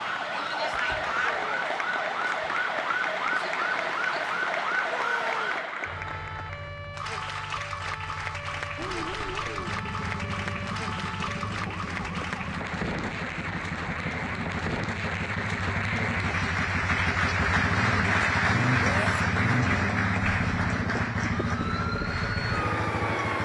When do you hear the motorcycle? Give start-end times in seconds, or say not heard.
8.8-23.4.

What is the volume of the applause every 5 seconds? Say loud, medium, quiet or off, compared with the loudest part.
medium, medium, medium, loud, medium.